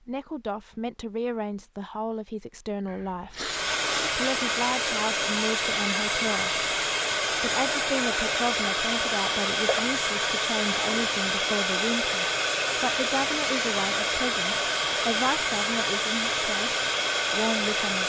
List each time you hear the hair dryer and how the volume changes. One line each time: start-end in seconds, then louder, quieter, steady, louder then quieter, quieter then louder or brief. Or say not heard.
3.4-18.0 steady.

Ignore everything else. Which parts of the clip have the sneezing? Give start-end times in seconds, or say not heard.
2.9-3.8, 10.8-11.2.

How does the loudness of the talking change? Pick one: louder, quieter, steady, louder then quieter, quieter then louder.
steady.